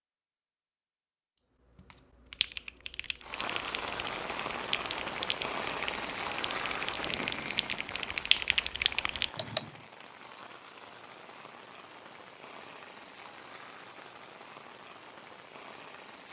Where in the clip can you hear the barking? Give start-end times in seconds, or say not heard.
not heard.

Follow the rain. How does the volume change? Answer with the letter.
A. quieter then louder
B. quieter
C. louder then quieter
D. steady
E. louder
B.